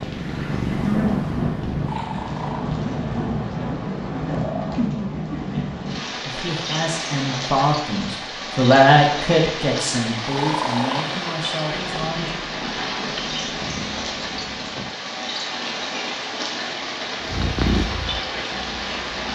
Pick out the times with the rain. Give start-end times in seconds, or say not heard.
0.0-19.2.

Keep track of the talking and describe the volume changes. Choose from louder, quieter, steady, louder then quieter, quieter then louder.
louder then quieter.